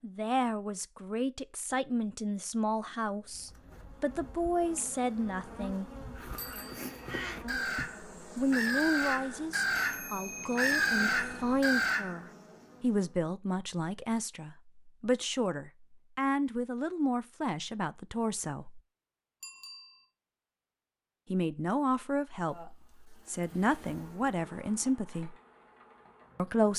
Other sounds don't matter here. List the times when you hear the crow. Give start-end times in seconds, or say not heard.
6.2-12.2.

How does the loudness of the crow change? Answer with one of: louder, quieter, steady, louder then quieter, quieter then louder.
louder.